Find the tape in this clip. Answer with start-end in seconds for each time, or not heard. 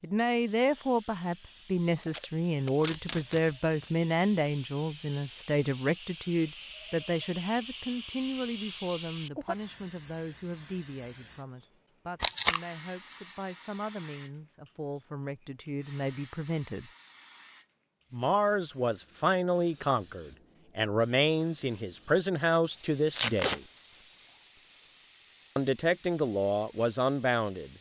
2.0-3.9, 12.2-12.6, 23.1-23.6.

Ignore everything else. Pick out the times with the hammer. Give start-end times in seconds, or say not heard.
not heard.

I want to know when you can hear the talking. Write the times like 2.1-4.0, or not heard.
0.0-16.9, 18.1-23.6, 25.6-27.7.